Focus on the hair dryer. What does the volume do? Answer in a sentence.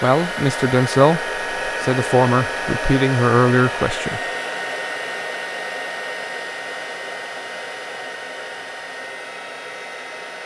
The loudness of the hair dryer goes down.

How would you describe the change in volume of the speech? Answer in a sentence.
The loudness of the speech goes down, then up.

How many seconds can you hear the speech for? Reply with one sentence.
The speech can be heard for 4 seconds in total.